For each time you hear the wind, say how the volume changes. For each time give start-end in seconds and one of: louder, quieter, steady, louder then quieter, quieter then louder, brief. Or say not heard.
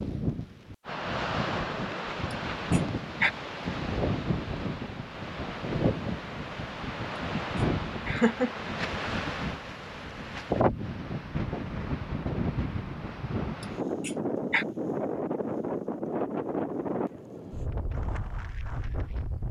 0.0-19.4 steady.